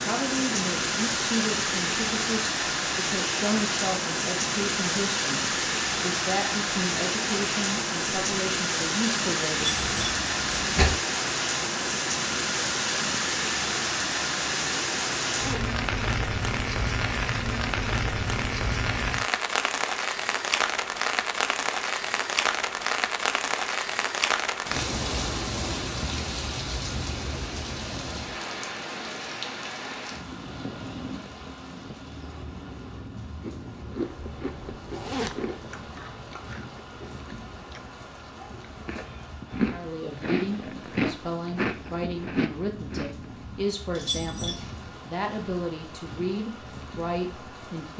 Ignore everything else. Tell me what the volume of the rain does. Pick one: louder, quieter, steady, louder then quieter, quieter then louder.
quieter.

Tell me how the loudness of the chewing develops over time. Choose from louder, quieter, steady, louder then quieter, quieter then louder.
quieter then louder.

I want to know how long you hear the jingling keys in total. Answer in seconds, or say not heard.
2 s.